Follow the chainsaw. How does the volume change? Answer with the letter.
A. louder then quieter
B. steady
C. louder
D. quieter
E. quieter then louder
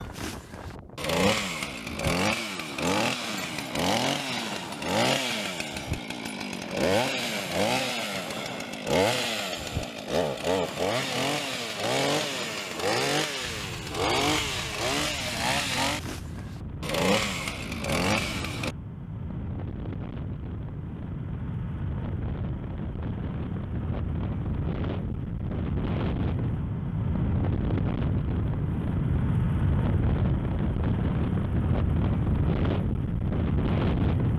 B.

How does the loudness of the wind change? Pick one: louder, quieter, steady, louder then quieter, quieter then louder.
louder.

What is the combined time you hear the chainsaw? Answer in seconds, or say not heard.
19 s.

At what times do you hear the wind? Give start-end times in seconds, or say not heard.
0.0-34.3.